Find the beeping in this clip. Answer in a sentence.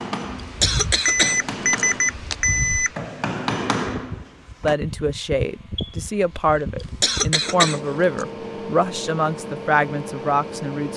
The beeping can be heard from 1.1 to 2.9 s and from 5.8 to 6.8 s.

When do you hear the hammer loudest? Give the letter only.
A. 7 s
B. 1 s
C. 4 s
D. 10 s
C.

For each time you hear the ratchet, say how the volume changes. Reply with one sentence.
You can't hear the ratchet here.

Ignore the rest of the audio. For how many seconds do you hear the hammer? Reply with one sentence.
The hammer can be heard for 5 seconds in total.